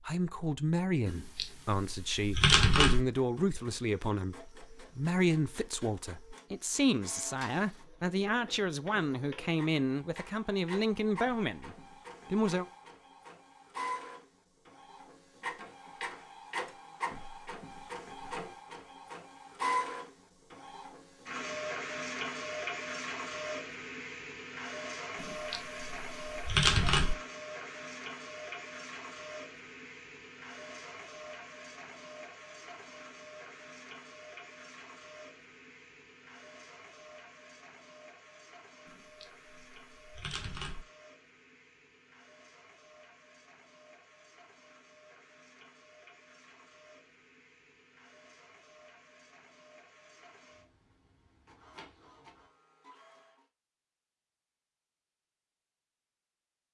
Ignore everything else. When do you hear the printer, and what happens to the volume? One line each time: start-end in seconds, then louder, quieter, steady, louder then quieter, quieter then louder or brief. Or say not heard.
3.0-53.5 louder then quieter.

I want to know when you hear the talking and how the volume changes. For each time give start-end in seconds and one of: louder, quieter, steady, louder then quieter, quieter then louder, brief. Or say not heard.
0.0-12.7 steady.